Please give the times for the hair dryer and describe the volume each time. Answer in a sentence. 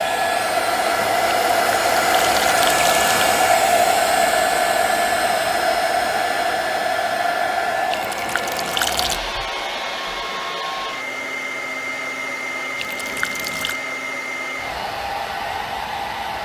You can hear the hair dryer from 0.0 to 16.3 s, getting quieter.